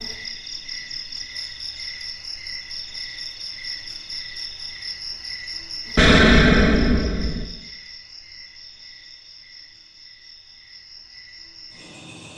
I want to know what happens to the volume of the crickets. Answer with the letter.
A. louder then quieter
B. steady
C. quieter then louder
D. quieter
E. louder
D.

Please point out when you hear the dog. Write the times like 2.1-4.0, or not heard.
not heard.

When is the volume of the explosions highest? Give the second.
6 s.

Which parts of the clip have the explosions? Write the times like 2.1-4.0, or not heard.
6.0-7.5.